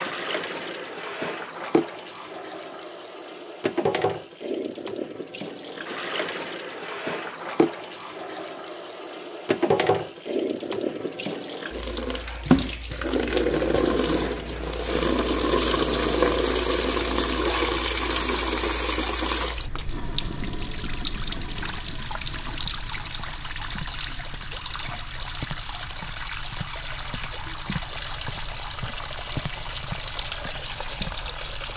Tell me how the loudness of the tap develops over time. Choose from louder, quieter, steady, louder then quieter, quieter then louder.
louder then quieter.